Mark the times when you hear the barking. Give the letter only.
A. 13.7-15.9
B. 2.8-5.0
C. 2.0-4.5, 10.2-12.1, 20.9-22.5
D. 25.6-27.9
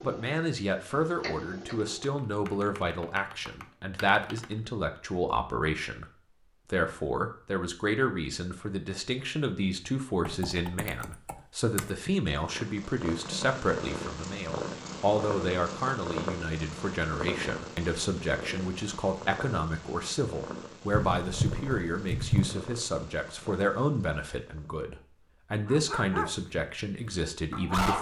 D.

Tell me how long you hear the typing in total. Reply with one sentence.
The typing can be heard for 6 seconds in total.